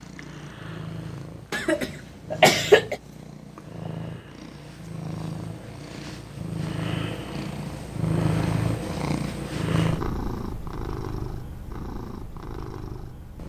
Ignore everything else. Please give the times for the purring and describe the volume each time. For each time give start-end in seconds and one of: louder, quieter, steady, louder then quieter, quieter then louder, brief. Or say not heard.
0.0-13.4 louder then quieter.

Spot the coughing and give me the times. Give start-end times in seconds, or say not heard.
1.5-3.0.